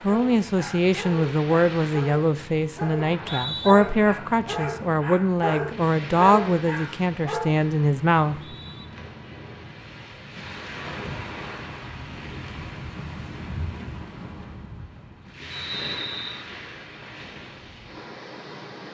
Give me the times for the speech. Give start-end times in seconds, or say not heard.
0.0-8.3.